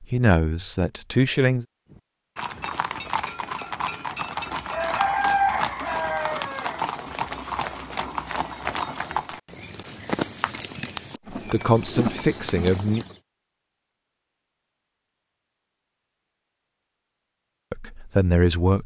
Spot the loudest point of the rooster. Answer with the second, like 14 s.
5 s.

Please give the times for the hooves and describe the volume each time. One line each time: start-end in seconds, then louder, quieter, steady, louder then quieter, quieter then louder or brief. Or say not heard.
1.9-13.2 steady.